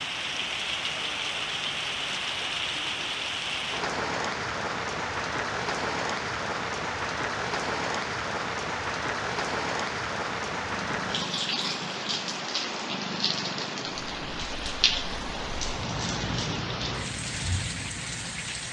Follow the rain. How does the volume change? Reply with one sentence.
The volume of the rain stays about the same.